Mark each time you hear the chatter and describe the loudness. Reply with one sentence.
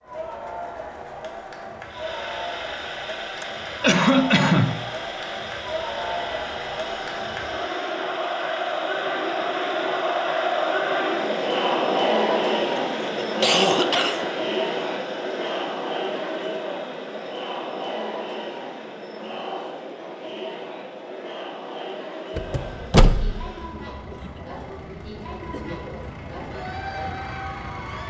The chatter can be heard from 0.0 to 28.0 s, getting louder then quieter.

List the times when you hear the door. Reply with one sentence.
You can hear the door from 22.4 to 23.4 s.